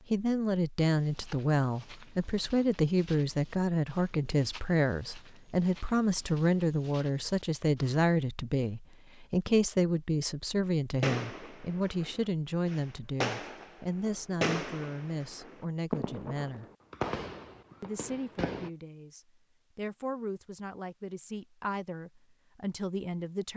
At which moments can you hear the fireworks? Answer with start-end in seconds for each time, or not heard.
11.0-18.7.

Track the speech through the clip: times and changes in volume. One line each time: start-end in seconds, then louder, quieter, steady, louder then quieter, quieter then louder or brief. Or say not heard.
0.1-16.6 quieter
17.8-23.5 louder.